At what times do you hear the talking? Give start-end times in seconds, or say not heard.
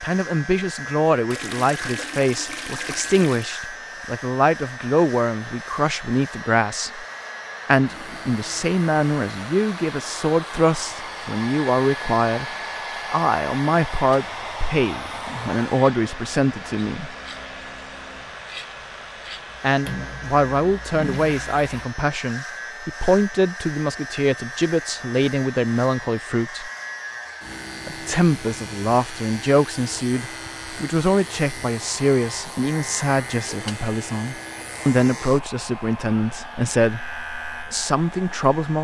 0.0-7.0, 7.7-12.4, 13.1-17.1, 19.6-26.7, 27.9-38.7.